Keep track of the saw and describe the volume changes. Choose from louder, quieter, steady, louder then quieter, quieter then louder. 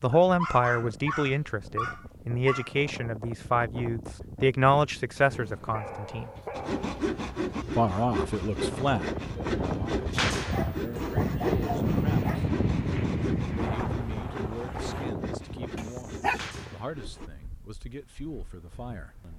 quieter.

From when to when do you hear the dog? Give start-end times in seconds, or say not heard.
0.1-2.8, 5.2-7.0, 10.5-12.4, 15.8-16.4.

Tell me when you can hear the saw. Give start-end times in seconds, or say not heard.
6.5-17.3.